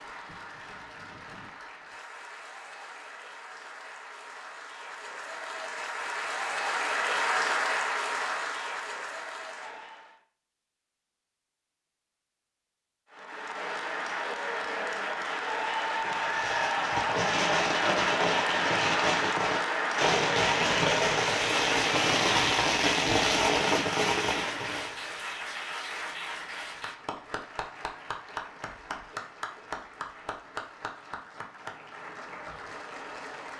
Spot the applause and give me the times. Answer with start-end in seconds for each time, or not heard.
0.0-10.2, 13.1-33.5.